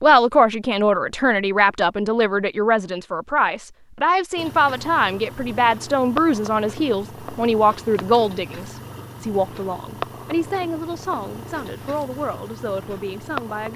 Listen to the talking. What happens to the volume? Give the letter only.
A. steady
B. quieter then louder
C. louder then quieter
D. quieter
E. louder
D.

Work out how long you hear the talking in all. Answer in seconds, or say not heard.
14 s.